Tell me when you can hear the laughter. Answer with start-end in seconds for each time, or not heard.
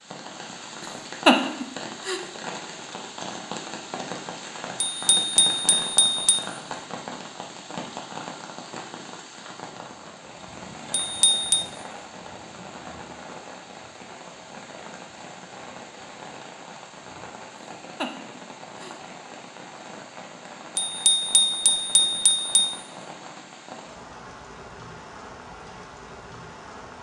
1.2-2.2, 18.0-18.9.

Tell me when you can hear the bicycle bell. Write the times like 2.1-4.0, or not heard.
4.8-6.5, 10.9-11.7, 20.8-22.8.